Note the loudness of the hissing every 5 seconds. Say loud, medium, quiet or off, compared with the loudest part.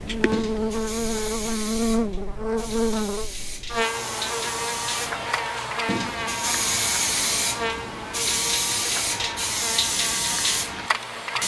medium, loud, loud.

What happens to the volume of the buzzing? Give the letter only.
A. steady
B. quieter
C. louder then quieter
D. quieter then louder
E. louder
B.